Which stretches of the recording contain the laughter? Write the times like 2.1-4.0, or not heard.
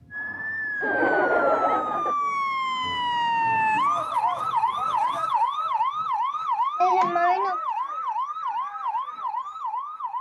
0.8-2.1, 6.8-7.6.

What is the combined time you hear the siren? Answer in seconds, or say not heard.
10 s.